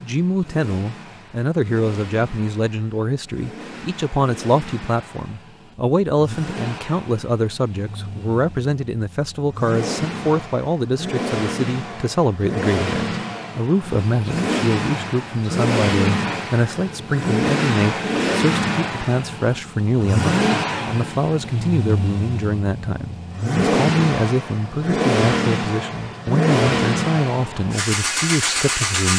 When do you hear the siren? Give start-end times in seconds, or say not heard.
not heard.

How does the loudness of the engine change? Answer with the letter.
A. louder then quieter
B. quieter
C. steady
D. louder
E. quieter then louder
D.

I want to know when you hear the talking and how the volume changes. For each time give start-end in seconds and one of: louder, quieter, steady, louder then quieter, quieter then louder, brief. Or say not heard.
0.0-29.1 steady.